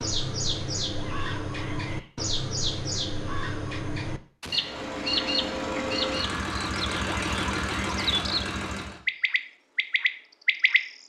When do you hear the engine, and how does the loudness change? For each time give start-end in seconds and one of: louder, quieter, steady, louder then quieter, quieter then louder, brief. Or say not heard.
4.5-9.0 steady.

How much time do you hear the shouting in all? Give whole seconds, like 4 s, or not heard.
2 s.